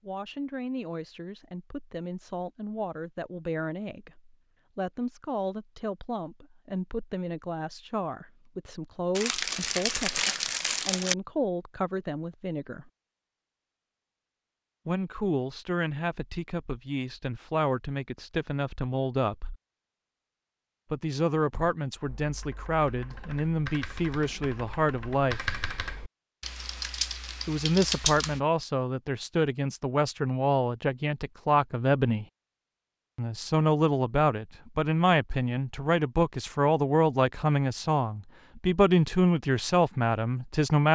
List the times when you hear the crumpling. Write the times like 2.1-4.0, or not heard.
9.2-11.2.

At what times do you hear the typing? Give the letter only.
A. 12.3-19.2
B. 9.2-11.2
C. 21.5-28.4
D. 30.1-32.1
C.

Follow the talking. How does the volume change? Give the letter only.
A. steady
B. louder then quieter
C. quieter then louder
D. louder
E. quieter
D.